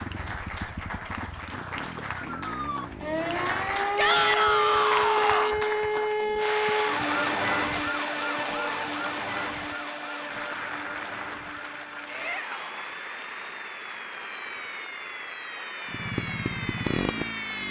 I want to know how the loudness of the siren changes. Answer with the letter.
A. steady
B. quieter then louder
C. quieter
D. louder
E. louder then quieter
B.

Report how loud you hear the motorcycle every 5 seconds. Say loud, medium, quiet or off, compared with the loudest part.
medium, off, off, loud.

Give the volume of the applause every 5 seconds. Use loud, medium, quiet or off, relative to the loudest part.
loud, loud, medium, medium.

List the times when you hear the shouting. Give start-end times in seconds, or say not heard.
4.0-5.6, 12.1-12.9.